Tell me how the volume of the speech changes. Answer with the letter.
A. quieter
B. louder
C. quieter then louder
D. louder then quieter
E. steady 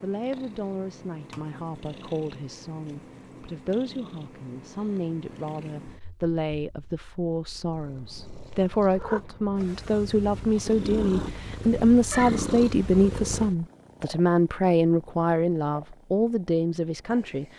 B.